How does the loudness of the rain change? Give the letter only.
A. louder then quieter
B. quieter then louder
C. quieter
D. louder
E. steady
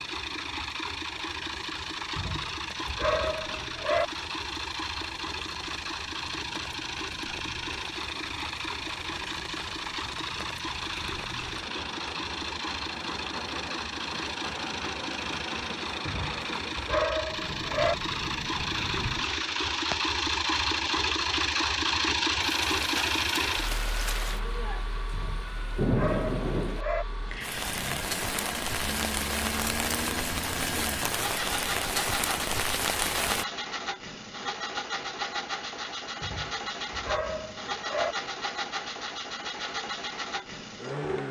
D.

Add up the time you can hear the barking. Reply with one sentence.
You can hear the barking for 8 seconds altogether.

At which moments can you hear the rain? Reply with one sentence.
You can hear the rain from 0.0 to 33.5 s.